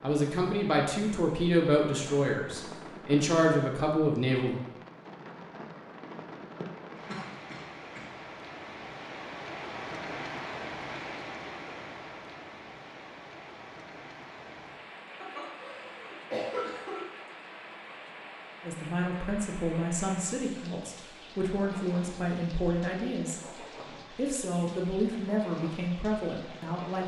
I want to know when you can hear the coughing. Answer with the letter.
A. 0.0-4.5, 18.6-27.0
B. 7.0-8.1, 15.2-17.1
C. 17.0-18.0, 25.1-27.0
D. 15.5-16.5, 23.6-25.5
B.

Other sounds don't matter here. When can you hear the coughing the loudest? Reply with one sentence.
The loudest moment of the coughing is at 16 seconds.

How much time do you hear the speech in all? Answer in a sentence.
You can hear the speech for 13 seconds altogether.